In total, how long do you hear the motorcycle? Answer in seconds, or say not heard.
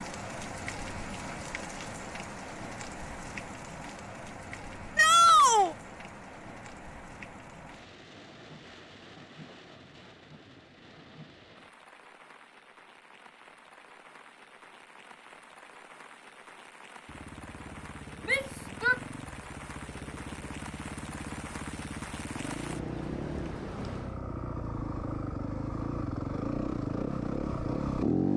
11 s.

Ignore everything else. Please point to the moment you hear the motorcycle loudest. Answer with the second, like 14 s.
28 s.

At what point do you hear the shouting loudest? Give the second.
5 s.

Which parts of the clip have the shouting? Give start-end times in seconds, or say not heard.
5.0-5.8, 18.2-19.0.